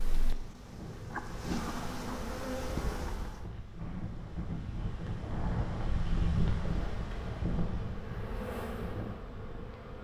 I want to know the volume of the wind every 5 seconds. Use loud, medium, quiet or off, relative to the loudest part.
medium, loud.